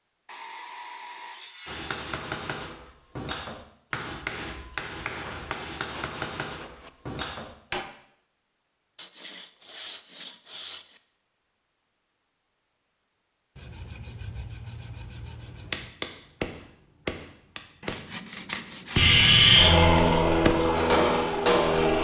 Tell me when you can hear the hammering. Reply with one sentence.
The hammering can be heard from 1.6 to 7.8 s and from 15.7 to 21.8 s.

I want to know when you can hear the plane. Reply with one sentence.
The plane can be heard from 18.9 to 21.9 s.